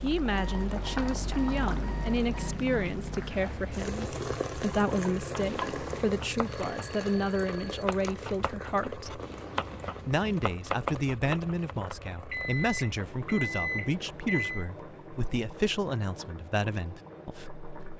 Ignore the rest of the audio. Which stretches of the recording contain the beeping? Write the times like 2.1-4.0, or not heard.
0.3-2.5, 6.4-7.8, 12.3-14.7.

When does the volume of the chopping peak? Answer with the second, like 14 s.
11 s.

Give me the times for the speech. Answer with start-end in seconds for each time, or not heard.
0.0-9.2, 10.1-17.6.